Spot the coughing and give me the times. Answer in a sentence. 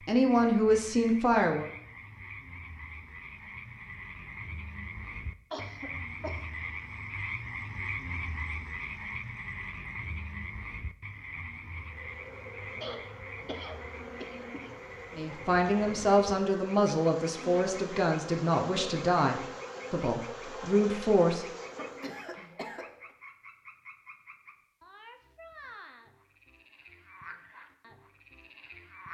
The coughing can be heard from 5.5 to 6.4 s, from 12.8 to 14.7 s and from 21.8 to 23.1 s.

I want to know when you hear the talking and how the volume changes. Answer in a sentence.
The talking can be heard briefly from 0.1 to 1.7 s; and from 15.2 to 21.4 s, at a steady volume.